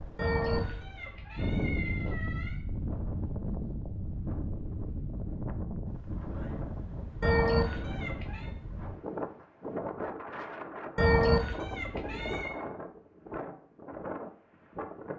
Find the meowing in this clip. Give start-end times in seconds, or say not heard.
0.1-2.6, 7.2-8.5, 10.9-12.6.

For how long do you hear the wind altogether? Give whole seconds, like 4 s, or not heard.
15 s.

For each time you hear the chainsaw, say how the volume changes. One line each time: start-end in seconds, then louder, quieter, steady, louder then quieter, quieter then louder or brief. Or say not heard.
not heard.